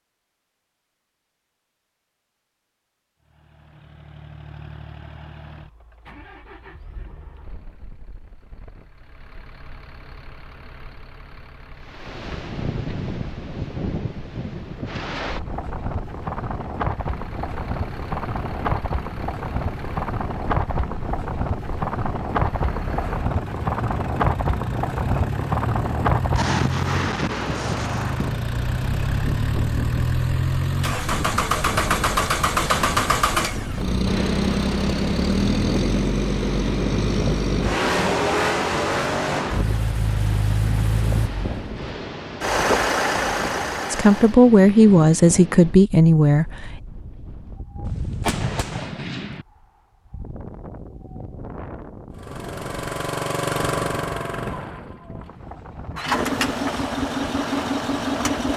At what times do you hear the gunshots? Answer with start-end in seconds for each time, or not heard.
47.8-49.5.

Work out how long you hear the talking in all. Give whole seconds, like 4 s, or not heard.
3 s.